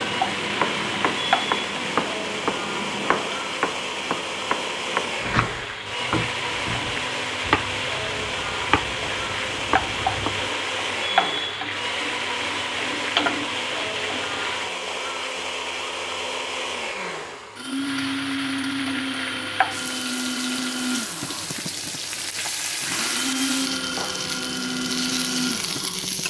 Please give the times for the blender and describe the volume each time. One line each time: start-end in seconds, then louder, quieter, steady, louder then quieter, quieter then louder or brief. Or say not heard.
0.0-26.2 steady.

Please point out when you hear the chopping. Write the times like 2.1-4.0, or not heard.
0.0-10.5.